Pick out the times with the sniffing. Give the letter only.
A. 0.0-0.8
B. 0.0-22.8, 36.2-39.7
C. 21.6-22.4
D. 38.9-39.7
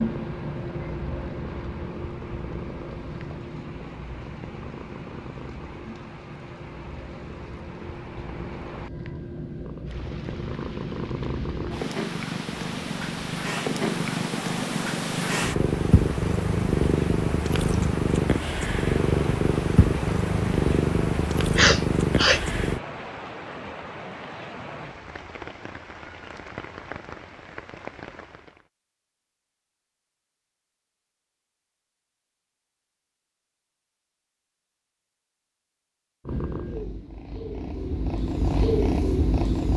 C.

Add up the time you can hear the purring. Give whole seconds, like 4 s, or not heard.
26 s.